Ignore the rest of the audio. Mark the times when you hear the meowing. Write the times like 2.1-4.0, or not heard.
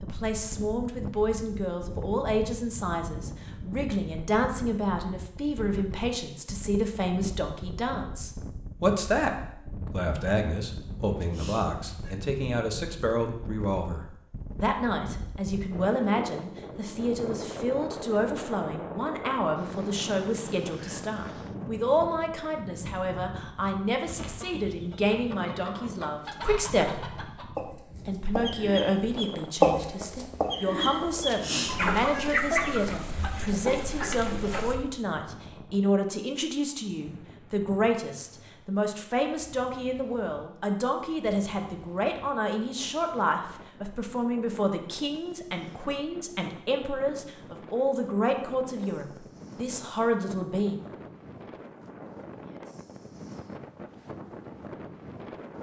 11.2-12.2, 31.2-32.4.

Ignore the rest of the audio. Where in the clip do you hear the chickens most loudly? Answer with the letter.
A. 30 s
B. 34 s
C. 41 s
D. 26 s
A.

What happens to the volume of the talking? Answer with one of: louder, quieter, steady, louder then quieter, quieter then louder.
steady.